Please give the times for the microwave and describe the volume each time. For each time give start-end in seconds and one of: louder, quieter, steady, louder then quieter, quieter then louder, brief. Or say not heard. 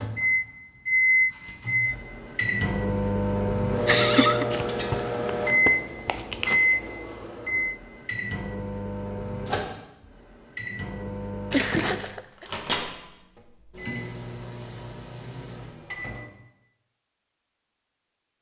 0.0-16.3 quieter.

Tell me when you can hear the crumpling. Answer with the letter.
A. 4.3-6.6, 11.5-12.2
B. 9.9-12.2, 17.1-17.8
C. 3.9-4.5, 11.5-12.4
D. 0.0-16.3
A.